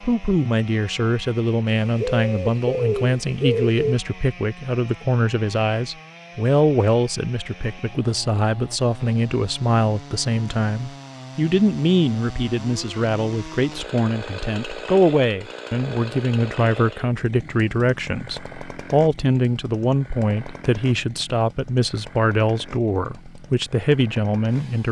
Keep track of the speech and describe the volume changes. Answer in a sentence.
The volume of the speech stays about the same.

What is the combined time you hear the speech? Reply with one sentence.
You can hear the speech for 25 seconds altogether.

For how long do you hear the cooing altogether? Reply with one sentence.
The cooing can be heard for 2 seconds in total.